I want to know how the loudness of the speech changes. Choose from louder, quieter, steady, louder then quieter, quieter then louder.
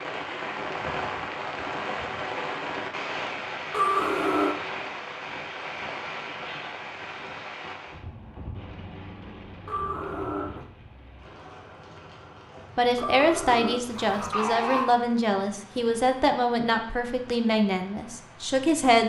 steady.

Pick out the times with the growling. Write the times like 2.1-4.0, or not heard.
3.7-4.5, 9.7-10.7, 12.9-14.9.